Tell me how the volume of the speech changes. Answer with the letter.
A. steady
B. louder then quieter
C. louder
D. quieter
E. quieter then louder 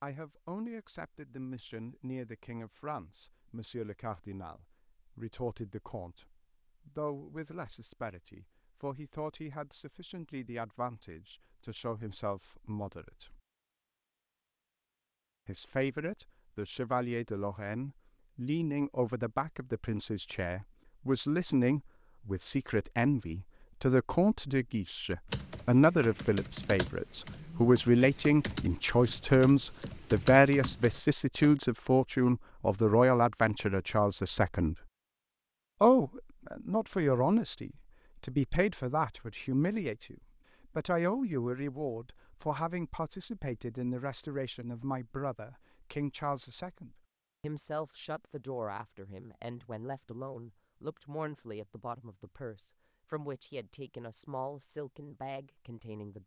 B.